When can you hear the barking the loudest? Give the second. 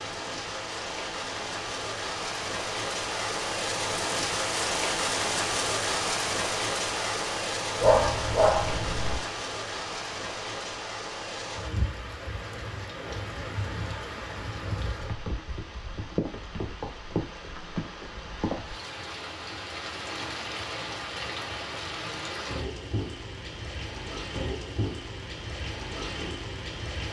8 s.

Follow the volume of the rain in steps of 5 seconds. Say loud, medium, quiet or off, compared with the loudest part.
loud, loud, medium, medium, medium, medium.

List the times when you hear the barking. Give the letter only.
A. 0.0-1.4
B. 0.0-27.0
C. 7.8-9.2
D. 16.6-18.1
C.